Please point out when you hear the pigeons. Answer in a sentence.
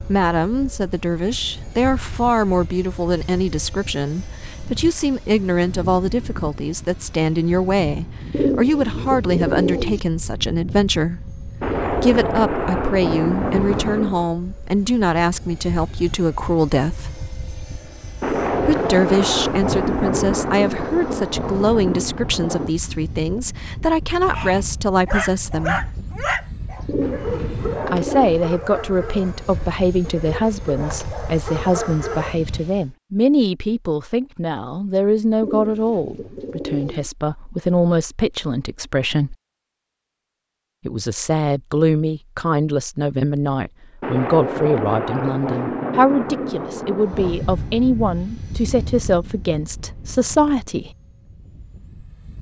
You can hear the pigeons from 8.3 to 10.0 s, from 26.9 to 28.4 s and from 35.4 to 37.1 s.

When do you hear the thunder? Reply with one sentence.
The thunder can be heard from 11.6 to 14.3 s, from 18.2 to 22.8 s and from 44.0 to 47.4 s.